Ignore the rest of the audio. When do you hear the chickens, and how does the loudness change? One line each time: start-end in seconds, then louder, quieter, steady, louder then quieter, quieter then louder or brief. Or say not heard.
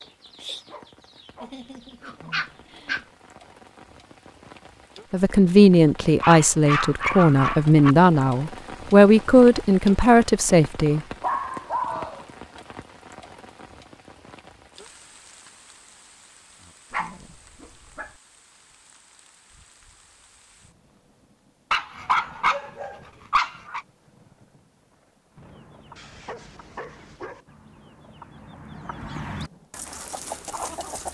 0.0-2.8 brief
25.3-31.0 louder.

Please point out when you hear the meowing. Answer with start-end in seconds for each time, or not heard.
not heard.